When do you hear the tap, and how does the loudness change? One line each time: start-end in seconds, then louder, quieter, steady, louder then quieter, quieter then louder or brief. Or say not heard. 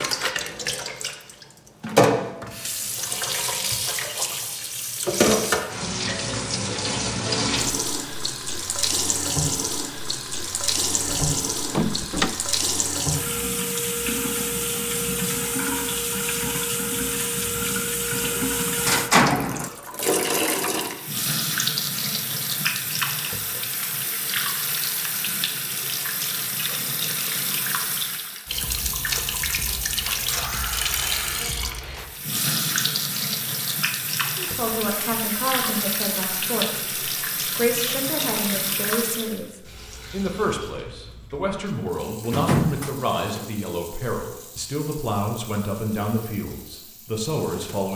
0.0-47.9 quieter.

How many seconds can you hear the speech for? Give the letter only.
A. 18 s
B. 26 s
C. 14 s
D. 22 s
C.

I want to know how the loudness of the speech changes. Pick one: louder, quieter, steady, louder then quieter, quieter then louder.
steady.